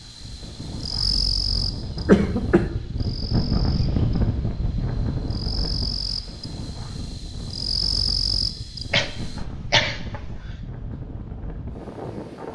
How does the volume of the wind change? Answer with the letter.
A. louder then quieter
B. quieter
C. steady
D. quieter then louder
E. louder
A.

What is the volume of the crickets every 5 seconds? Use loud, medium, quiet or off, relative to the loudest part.
loud, loud, off.